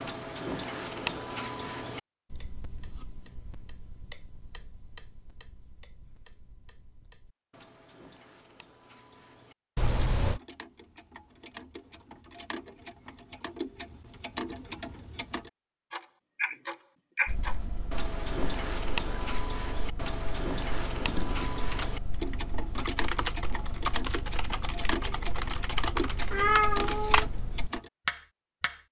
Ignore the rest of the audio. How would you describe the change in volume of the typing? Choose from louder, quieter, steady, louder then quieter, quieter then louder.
louder.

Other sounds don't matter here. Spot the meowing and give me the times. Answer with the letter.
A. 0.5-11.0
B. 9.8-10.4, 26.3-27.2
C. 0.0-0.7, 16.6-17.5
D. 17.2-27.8
B.